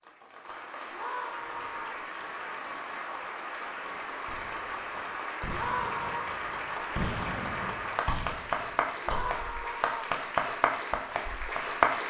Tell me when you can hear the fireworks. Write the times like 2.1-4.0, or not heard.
1.6-9.7.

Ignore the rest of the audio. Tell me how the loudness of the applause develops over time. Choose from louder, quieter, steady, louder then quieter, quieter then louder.
louder.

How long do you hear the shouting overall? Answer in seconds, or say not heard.
3 s.